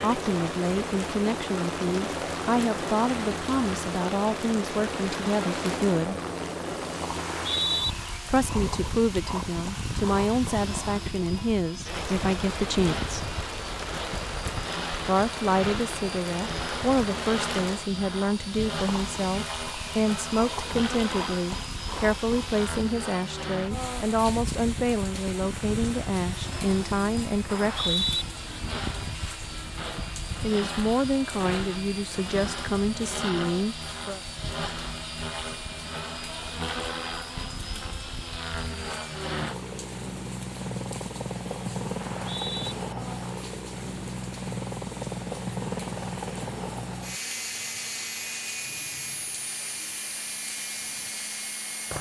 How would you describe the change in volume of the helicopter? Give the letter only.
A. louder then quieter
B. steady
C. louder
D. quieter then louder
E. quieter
B.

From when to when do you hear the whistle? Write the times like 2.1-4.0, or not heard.
7.2-8.0, 27.4-28.2, 42.0-42.8.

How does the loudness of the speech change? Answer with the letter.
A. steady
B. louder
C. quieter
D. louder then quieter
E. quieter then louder
A.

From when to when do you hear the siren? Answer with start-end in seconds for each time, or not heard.
not heard.